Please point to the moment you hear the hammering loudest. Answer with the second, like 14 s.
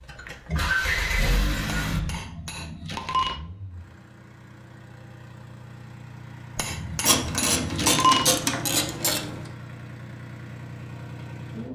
8 s.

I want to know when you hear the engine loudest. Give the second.
1 s.